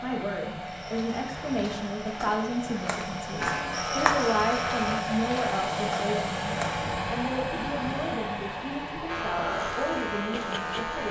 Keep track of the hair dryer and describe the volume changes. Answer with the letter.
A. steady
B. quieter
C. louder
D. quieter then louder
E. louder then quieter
E.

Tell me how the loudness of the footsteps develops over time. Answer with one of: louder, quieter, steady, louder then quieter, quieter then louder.
louder then quieter.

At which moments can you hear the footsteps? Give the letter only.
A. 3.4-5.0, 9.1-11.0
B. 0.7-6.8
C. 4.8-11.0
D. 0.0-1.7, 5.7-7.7
B.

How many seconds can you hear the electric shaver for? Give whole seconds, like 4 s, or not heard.
4 s.